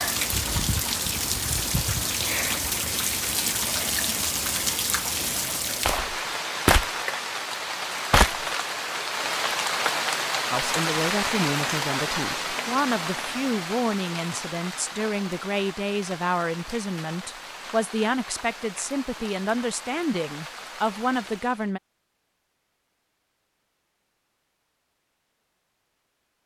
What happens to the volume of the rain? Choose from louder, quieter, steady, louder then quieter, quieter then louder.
quieter.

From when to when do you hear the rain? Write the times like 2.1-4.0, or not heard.
0.0-21.8.